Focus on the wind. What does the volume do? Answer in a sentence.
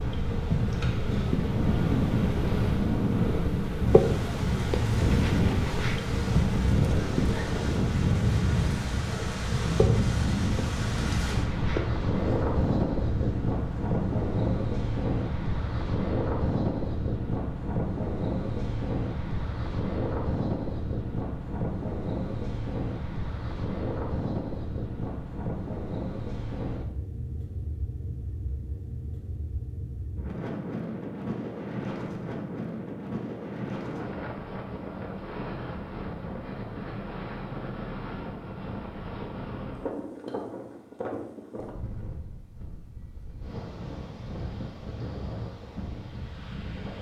The volume of the wind goes down.